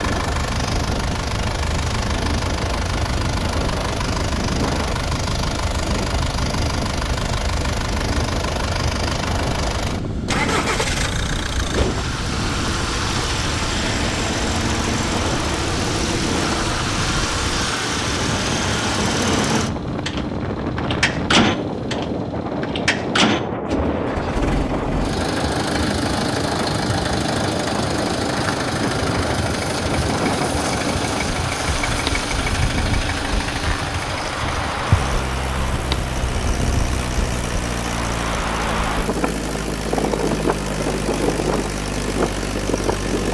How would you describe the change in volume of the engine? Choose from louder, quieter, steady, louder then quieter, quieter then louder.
steady.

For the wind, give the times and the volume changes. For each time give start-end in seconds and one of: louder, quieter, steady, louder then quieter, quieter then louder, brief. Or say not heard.
0.0-43.2 steady.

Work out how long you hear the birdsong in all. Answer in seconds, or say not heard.
not heard.